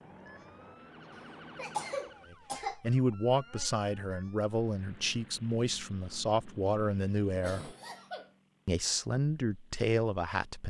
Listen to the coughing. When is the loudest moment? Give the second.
2 s.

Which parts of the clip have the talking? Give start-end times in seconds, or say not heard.
2.3-7.7, 8.7-10.6.